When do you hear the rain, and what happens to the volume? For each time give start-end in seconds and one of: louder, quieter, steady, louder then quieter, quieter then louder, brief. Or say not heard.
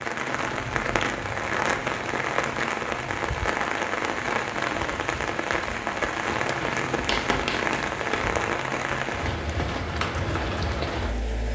0.0-11.5 steady.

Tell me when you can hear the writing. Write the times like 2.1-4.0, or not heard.
0.5-2.2, 6.6-8.3.